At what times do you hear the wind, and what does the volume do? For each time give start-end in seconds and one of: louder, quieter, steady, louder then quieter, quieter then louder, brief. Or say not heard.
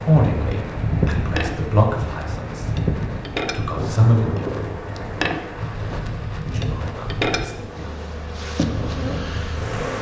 0.0-9.8 quieter.